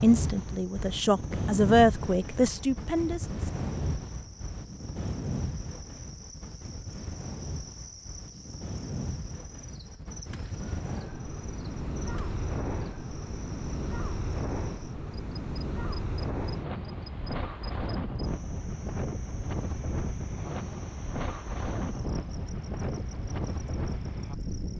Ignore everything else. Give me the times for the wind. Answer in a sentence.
You can hear the wind from 0.0 to 24.7 s.